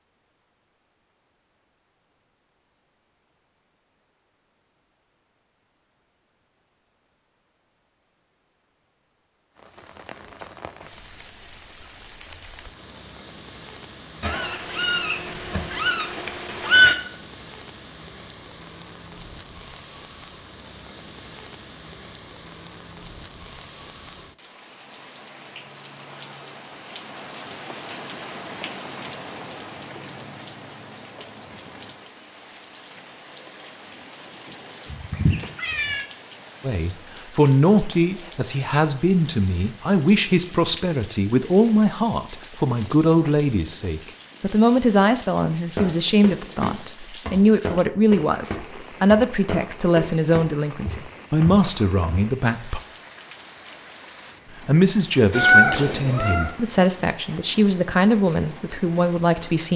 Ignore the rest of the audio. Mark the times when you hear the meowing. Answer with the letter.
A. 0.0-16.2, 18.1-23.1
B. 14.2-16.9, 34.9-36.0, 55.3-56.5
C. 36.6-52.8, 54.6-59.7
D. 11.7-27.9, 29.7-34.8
B.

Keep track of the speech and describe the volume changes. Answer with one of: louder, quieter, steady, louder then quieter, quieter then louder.
steady.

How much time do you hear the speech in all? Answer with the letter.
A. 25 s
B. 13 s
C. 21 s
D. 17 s
C.